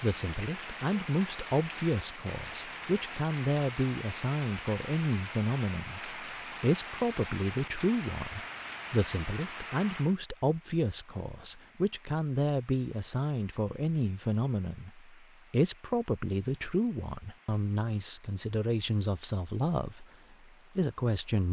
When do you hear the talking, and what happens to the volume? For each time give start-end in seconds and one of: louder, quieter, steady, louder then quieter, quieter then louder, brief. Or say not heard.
0.0-20.1 steady
20.8-21.4 brief.